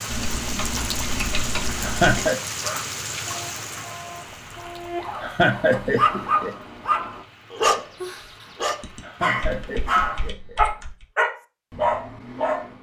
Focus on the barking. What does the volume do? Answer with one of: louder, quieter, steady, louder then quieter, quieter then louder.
louder.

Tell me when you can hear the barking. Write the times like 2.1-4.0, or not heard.
2.6-12.7.